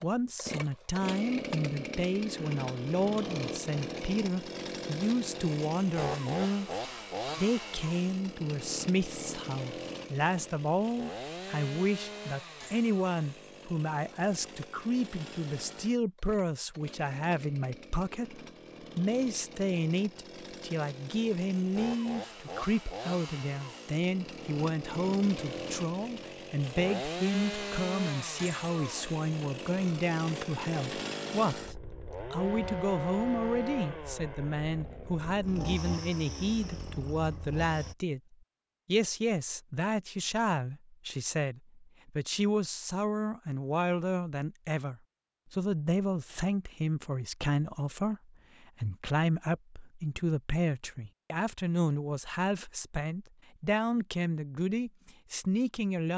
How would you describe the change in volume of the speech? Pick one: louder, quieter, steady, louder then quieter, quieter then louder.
steady.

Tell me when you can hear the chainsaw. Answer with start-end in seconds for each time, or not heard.
0.0-38.0.